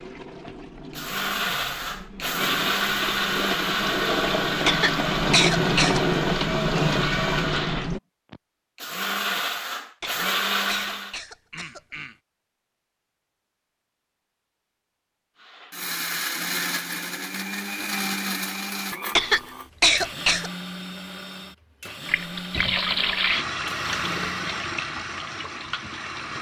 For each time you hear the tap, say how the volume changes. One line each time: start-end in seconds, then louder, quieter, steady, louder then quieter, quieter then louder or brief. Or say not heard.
0.0-8.0 louder
22.1-26.3 quieter.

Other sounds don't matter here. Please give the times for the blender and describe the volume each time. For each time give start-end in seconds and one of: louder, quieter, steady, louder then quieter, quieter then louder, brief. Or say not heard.
0.5-11.2 steady
15.3-24.5 quieter.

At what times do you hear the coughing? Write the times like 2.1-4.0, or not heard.
4.7-6.0, 10.0-12.2, 19.1-20.5.